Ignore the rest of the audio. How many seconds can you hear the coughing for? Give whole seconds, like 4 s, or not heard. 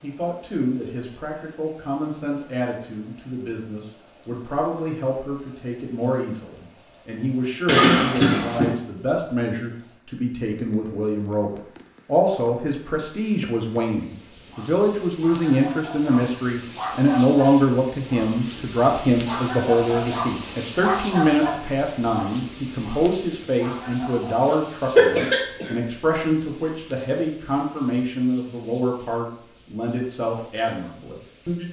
2 s.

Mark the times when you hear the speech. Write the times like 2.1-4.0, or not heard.
0.0-31.6.